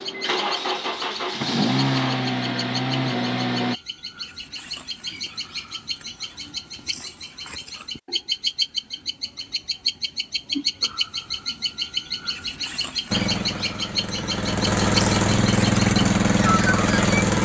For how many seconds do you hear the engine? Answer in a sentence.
The engine can be heard for 8 seconds in total.